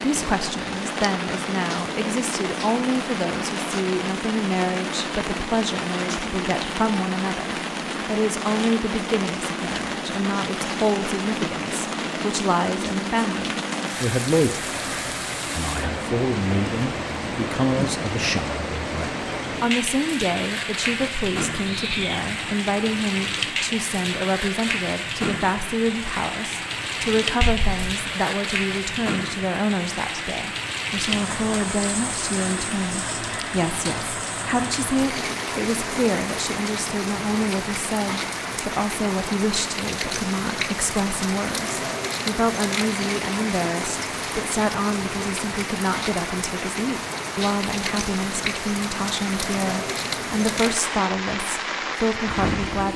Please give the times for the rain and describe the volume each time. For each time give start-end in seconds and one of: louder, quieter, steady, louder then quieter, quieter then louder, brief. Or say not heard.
0.0-52.9 steady.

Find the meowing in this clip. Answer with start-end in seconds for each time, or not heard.
21.6-22.6, 27.4-28.0.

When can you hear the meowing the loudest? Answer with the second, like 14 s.
22 s.